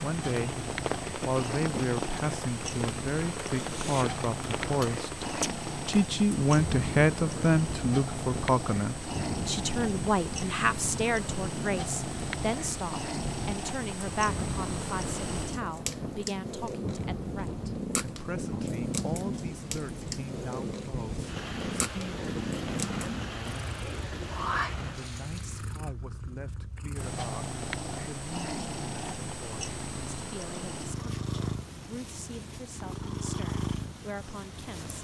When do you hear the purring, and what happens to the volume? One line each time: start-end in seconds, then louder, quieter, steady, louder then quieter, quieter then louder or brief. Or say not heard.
0.0-34.9 steady.